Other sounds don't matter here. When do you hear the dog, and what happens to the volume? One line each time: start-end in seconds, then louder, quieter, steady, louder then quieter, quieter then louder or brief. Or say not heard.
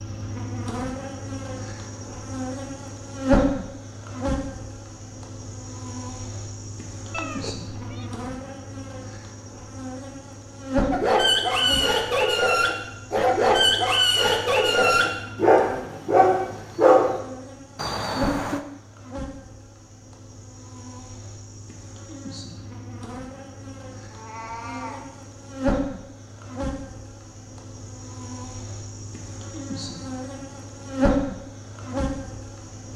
10.9-17.2 steady.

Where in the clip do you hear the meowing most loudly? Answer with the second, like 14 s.
18 s.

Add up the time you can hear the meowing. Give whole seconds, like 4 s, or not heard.
3 s.